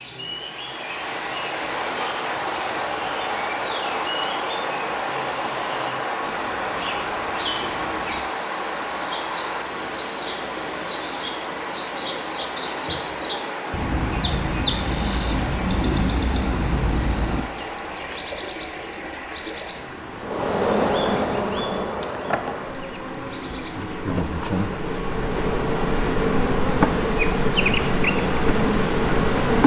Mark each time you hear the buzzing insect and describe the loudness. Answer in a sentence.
You can hear the buzzing insect from 20.2 to 29.6 s, getting quieter then louder.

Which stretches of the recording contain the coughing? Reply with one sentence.
You can't hear the coughing here.